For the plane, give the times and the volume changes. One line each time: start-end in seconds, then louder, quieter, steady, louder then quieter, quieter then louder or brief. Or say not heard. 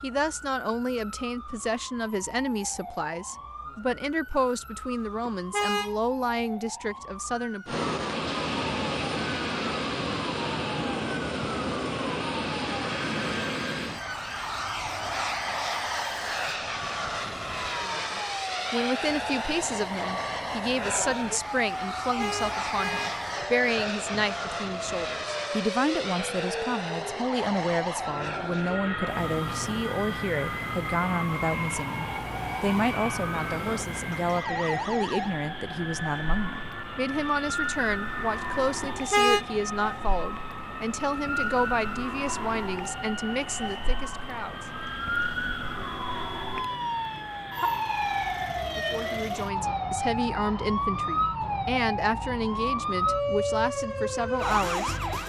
7.7-55.2 quieter.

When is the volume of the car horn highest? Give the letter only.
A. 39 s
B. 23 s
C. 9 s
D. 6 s
A.